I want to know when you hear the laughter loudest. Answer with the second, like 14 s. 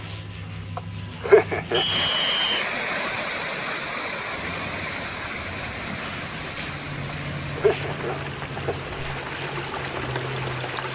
1 s.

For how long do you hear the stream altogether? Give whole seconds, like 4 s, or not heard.
9 s.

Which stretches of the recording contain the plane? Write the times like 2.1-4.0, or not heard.
0.0-2.1, 4.3-10.9.